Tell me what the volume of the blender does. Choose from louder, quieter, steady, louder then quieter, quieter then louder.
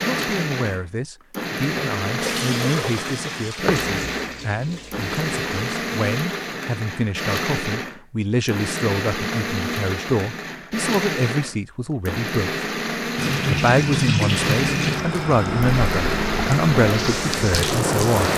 steady.